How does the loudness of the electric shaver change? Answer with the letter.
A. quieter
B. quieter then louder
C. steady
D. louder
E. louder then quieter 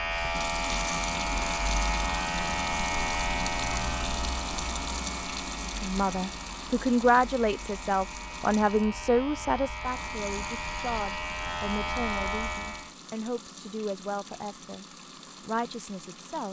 B.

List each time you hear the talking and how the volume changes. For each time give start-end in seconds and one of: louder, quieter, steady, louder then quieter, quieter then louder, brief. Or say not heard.
5.8-16.4 quieter.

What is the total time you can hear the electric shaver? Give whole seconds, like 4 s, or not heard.
13 s.